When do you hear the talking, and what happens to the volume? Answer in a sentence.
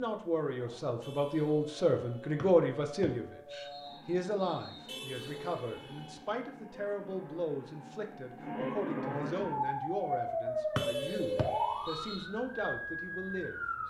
You can hear the talking from 0.0 to 13.8 s, getting quieter.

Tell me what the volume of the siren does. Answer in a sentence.
The volume of the siren goes up.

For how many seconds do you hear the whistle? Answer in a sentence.
You can hear the whistle for 4 seconds altogether.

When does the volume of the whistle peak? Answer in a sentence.
The volume of the whistle peaks at 11 seconds.